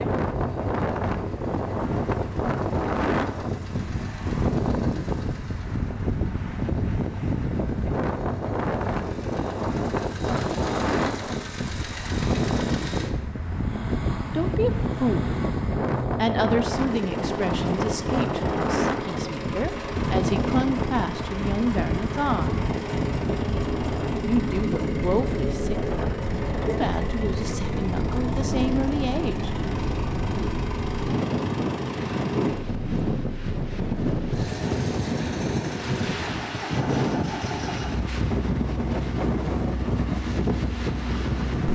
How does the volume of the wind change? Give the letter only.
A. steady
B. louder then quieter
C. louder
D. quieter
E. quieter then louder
A.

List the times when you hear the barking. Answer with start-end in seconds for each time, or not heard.
not heard.